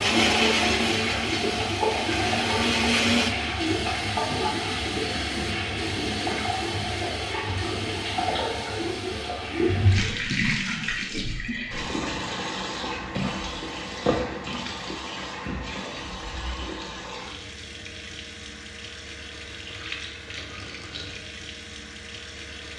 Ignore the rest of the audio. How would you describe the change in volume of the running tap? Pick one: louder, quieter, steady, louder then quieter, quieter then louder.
quieter.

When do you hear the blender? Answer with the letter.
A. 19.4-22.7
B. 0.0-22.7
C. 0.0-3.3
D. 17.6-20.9
C.